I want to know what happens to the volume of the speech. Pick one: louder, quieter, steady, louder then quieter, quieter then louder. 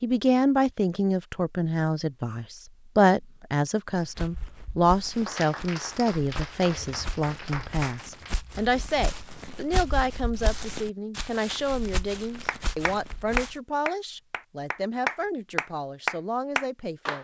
quieter.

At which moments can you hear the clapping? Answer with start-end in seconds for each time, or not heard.
5.1-8.5, 12.4-17.1.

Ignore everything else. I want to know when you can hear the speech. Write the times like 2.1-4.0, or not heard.
0.0-17.1.